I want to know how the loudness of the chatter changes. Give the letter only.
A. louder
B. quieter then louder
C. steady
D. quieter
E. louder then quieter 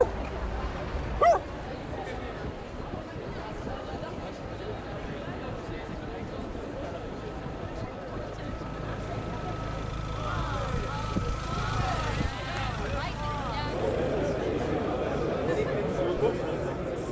A.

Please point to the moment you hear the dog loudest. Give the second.
1 s.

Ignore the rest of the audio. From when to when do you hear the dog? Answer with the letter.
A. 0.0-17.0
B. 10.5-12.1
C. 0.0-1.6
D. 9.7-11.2
C.